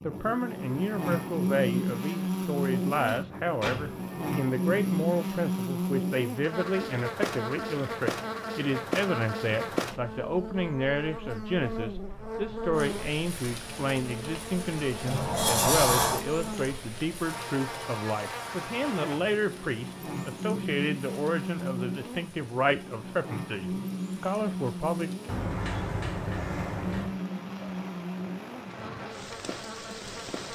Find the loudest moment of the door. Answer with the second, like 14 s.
16 s.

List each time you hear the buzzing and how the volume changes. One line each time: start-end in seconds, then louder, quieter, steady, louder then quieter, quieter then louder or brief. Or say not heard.
0.0-30.5 quieter.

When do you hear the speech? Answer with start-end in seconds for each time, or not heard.
0.0-25.1.